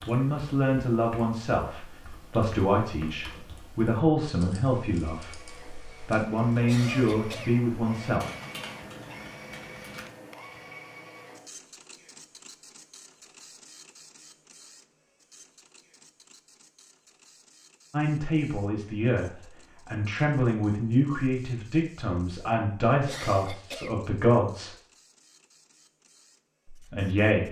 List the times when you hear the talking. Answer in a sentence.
You can hear the talking from 0.1 to 5.5 s, from 6.0 to 8.2 s, from 17.9 to 24.8 s and from 26.6 to 27.4 s.